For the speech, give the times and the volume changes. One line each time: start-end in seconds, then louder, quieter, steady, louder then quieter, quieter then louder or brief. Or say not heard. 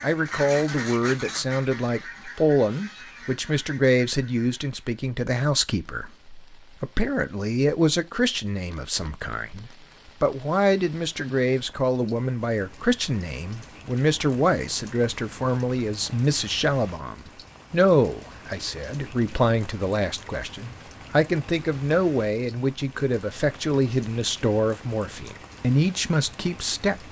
0.0-27.0 steady.